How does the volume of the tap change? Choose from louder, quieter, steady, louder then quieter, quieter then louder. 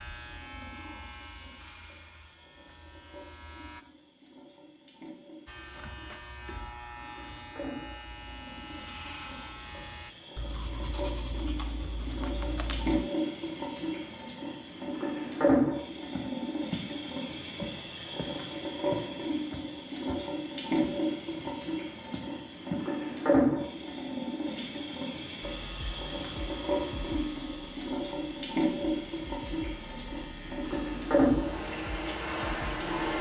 louder.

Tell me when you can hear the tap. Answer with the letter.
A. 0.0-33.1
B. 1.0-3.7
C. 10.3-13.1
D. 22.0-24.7
A.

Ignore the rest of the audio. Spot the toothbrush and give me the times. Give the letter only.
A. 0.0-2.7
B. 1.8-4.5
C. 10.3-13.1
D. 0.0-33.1
C.